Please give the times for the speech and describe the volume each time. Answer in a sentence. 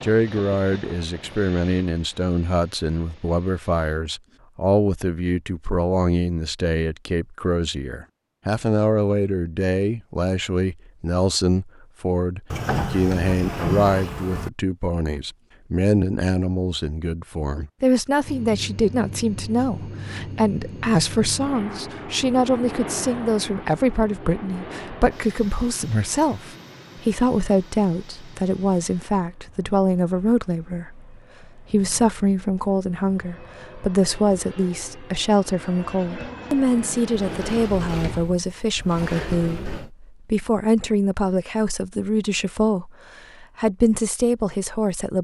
The speech can be heard from 0.0 to 45.2 s, at a steady volume.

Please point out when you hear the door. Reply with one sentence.
The door can be heard from 12.5 to 14.5 s and from 37.1 to 39.9 s.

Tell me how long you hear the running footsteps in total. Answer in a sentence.
The running footsteps can't be heard in this clip.